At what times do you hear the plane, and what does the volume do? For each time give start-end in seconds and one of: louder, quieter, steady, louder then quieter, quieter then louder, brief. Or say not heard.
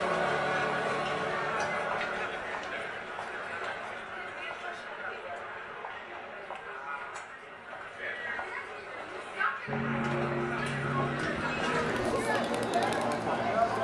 9.7-13.7 steady.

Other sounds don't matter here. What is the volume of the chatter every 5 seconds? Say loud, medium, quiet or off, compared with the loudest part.
loud, medium, loud.